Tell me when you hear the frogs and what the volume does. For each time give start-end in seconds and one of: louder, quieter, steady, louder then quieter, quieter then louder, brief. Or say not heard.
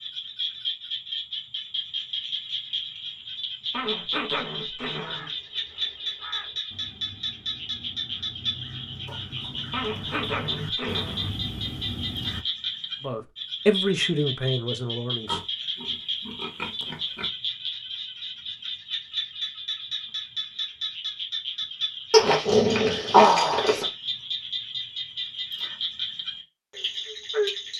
0.0-27.7 steady.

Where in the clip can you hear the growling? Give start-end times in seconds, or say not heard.
3.7-5.3, 9.7-11.3, 22.1-23.9.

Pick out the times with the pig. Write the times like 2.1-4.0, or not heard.
9.1-11.1, 15.2-17.3.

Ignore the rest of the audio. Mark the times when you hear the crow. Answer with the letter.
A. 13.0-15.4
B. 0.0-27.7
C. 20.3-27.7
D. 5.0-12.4
D.